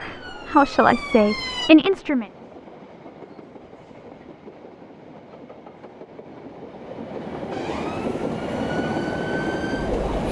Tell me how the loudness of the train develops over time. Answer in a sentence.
The loudness of the train goes up.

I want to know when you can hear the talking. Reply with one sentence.
The talking can be heard from 0.0 to 2.2 s.